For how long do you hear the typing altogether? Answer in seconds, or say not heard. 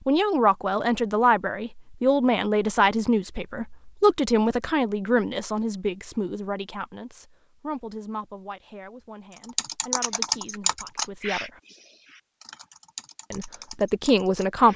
5 s.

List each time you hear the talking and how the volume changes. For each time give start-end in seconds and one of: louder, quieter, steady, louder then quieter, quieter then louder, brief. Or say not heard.
0.1-11.6 quieter
13.3-14.7 brief.